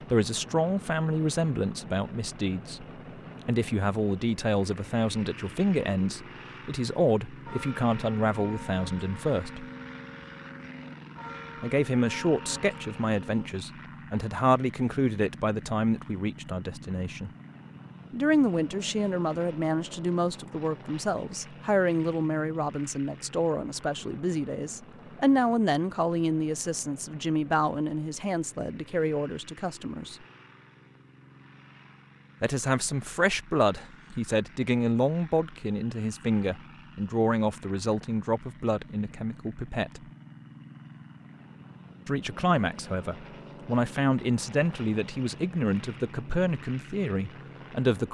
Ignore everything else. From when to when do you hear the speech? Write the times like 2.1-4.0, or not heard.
0.0-2.9, 3.5-9.7, 11.6-17.3, 18.1-30.1, 32.4-40.0, 42.0-48.0.